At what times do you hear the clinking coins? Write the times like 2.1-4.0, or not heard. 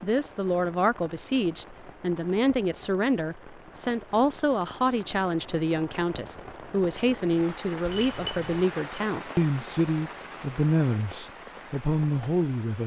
7.8-8.7.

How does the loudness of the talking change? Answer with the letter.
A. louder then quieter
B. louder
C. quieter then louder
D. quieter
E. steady
E.